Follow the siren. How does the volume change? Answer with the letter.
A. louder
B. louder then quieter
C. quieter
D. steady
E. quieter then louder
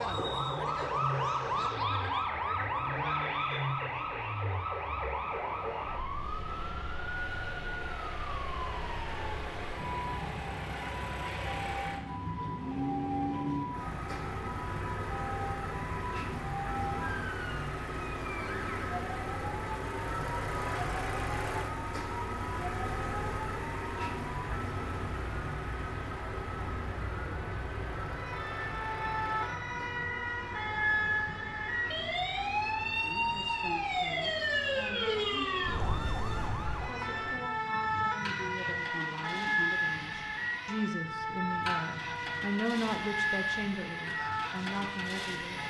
E.